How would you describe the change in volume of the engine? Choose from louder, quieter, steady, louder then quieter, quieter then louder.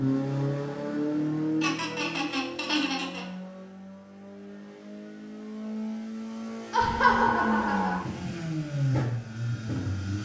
quieter then louder.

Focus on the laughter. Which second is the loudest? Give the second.
7 s.